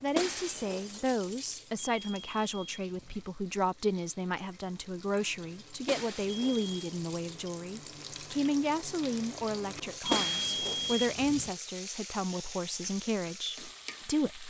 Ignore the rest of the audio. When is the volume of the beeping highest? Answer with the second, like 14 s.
10 s.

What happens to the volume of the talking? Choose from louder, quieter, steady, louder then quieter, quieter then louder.
steady.